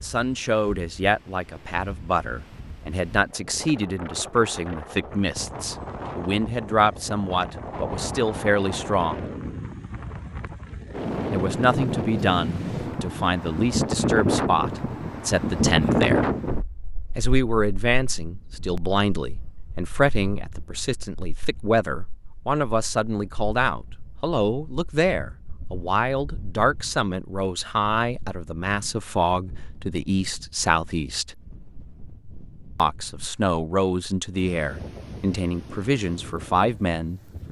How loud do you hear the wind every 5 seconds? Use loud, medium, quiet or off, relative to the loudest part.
quiet, medium, loud, loud, quiet, quiet, quiet, quiet.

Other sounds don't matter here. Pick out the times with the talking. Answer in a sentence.
The talking can be heard from 0.0 to 9.2 s, from 11.3 to 16.4 s, from 17.1 to 31.4 s and from 32.8 to 37.4 s.